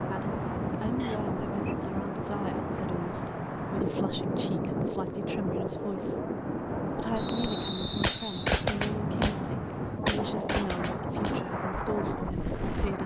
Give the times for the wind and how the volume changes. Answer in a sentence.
You can hear the wind from 0.0 to 13.0 s, at a steady volume.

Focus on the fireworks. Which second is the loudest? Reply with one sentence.
The volume of the fireworks peaks at 9 seconds.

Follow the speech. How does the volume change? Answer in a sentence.
The loudness of the speech stays about the same.